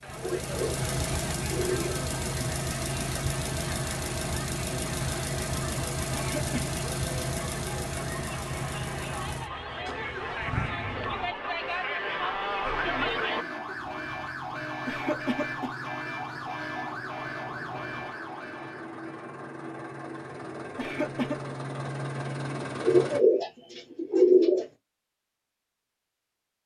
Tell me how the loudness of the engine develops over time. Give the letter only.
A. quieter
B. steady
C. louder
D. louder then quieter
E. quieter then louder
E.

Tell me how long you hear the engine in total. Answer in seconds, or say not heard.
23 s.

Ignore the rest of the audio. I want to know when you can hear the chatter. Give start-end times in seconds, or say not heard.
0.0-13.4.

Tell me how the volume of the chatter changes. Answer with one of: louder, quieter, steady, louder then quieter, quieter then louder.
louder.